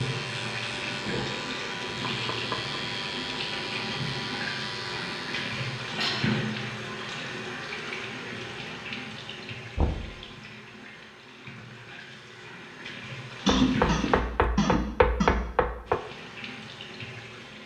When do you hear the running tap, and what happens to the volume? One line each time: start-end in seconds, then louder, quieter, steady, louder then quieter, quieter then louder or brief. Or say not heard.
0.0-14.2 quieter
15.8-17.6 brief.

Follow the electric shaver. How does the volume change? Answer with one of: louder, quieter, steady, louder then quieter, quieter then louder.
steady.